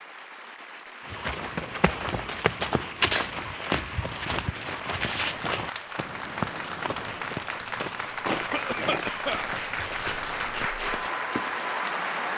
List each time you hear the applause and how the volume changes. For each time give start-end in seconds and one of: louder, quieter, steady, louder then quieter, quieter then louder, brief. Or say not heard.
0.0-12.3 louder.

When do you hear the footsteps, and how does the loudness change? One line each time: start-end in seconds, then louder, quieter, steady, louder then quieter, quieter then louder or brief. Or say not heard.
1.1-11.7 quieter.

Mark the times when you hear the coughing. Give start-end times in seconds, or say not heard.
8.3-9.6.